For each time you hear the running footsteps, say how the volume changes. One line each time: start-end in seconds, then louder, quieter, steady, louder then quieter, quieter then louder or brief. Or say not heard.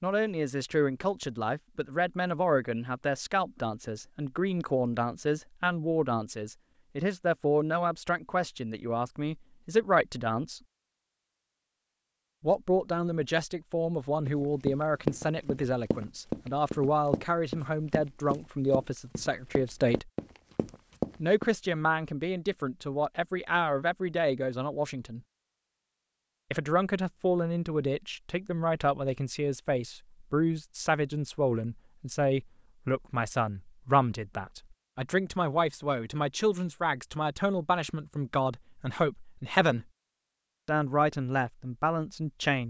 14.2-21.5 quieter then louder.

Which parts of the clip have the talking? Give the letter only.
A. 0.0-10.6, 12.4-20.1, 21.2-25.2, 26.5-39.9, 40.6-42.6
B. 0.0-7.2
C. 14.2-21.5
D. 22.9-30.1
A.